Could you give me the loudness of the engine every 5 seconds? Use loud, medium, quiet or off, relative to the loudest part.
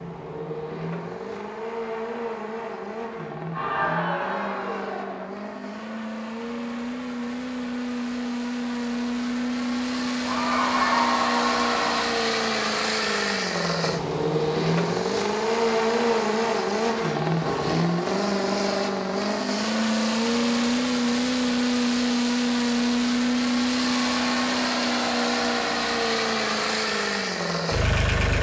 medium, medium, loud, loud, loud, loud.